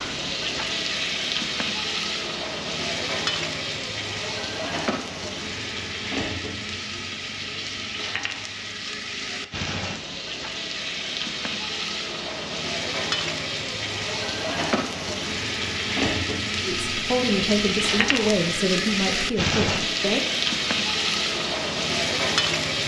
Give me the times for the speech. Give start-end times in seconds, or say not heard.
16.6-20.2.